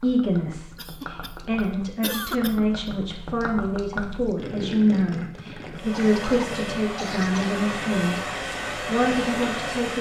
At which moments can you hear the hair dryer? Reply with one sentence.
You can hear the hair dryer from 5.7 to 9.9 s.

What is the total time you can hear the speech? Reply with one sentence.
You can hear the speech for 10 seconds altogether.